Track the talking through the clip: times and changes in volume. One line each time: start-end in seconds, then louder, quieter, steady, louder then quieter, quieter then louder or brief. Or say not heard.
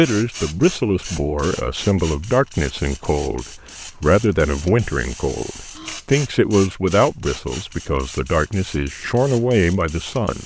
0.0-10.4 steady.